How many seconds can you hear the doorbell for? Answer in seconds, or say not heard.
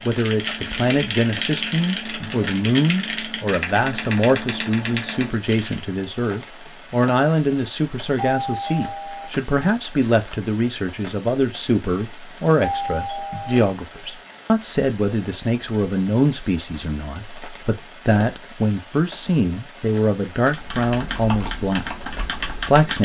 2 s.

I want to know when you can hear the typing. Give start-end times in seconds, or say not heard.
0.0-5.8, 20.4-23.0.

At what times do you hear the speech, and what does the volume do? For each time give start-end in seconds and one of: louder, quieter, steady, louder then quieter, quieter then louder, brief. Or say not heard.
0.1-23.0 steady.